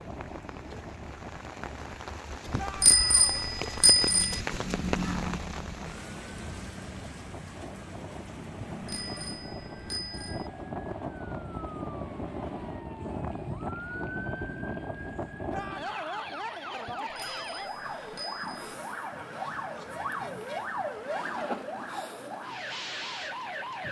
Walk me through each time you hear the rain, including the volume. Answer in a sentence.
You can hear the rain from 0.0 to 23.8 s, getting quieter.